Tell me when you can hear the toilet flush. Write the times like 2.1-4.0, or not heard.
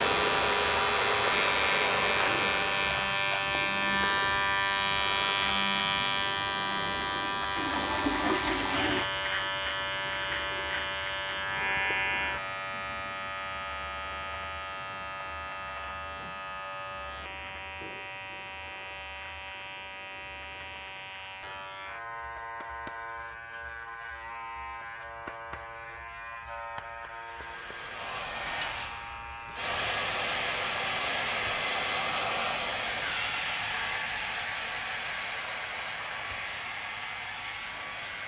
7.5-9.1.